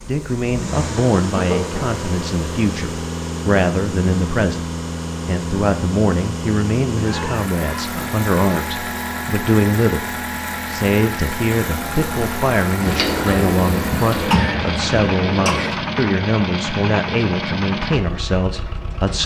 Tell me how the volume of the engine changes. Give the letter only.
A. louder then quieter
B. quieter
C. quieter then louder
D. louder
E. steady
E.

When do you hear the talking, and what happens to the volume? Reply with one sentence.
The talking can be heard from 0.1 to 19.2 s, at a steady volume.